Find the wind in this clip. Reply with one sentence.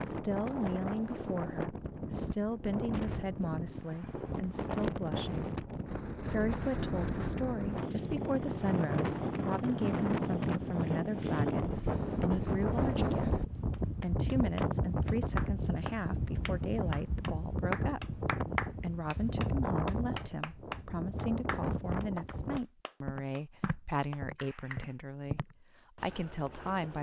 You can hear the wind from 0.0 to 22.6 s.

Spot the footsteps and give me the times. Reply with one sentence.
You can hear the footsteps from 22.5 to 26.9 s.